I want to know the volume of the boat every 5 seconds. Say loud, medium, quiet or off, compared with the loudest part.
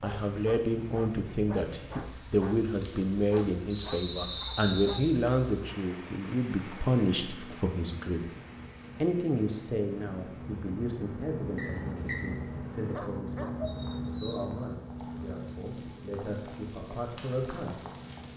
off, medium, loud, medium.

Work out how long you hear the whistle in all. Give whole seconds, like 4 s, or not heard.
2 s.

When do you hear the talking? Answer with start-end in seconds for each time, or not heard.
0.0-8.2, 9.0-17.9.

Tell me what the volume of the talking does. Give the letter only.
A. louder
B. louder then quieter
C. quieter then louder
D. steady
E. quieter
E.